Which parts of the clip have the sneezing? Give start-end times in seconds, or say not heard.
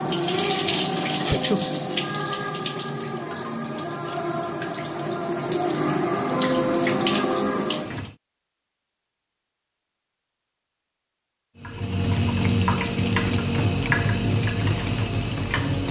1.2-1.8.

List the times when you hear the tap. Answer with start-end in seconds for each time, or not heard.
0.0-8.2, 11.6-15.8.